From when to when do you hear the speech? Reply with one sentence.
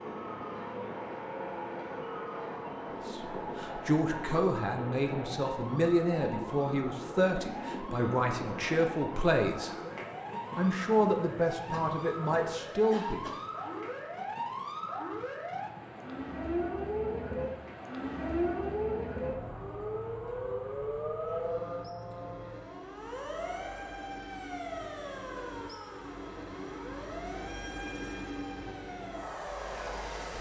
The speech can be heard from 3.0 to 9.8 s and from 10.6 to 13.2 s.